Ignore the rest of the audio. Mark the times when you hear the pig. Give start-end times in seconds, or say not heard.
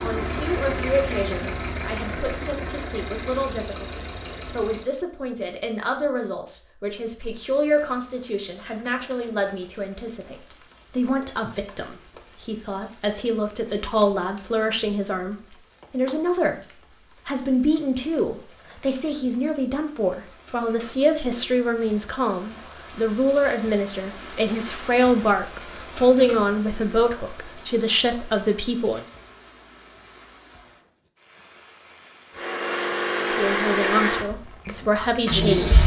not heard.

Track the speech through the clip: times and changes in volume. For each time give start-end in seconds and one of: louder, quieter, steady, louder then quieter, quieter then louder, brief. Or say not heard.
0.0-29.1 louder
33.4-35.8 brief.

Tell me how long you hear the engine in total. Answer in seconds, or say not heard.
8 s.